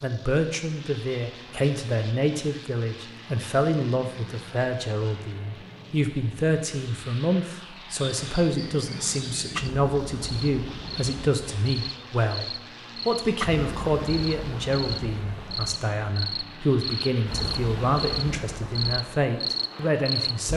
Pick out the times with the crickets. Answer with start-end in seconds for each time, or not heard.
8.0-20.5.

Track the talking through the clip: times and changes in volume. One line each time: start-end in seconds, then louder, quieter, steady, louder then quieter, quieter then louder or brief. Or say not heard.
0.0-20.5 steady.